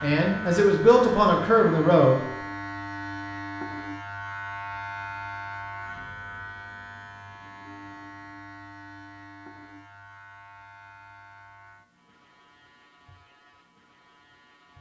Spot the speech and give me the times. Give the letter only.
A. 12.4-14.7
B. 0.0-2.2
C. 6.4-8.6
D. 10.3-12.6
B.